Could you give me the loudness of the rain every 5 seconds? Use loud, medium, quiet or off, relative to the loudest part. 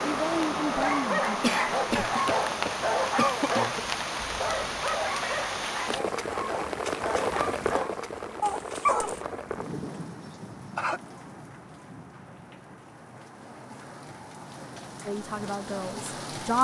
loud, loud, quiet, medium.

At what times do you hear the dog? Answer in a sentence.
You can hear the dog from 0.7 to 9.2 s.